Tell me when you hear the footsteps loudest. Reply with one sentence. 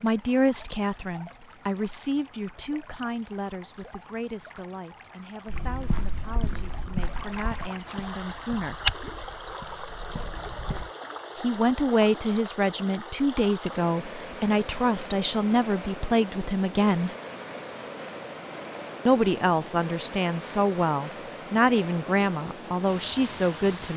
The volume of the footsteps peaks at 9 seconds.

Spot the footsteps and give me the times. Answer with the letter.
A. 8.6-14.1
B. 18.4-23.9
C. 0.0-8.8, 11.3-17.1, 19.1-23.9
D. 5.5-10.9
D.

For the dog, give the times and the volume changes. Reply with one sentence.
The dog can't be heard in this clip.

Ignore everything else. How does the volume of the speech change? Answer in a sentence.
The volume of the speech goes down, then up.